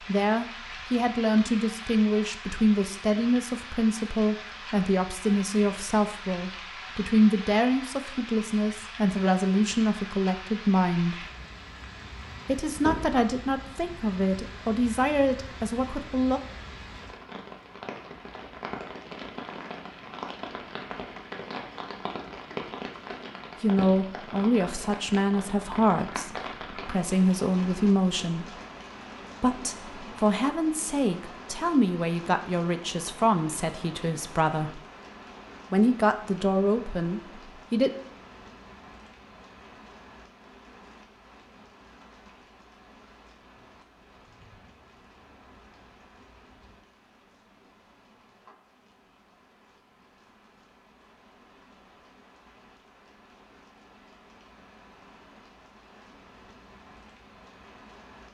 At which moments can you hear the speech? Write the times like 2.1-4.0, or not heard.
0.1-11.2, 12.4-16.4, 23.6-28.6, 29.4-34.8, 35.7-37.9.